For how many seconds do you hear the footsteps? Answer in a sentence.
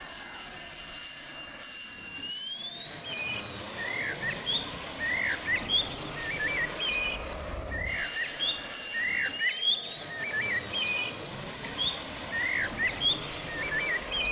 The footsteps can't be heard in this clip.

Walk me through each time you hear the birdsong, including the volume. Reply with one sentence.
You can hear the birdsong from 3.0 to 14.2 s, at a steady volume.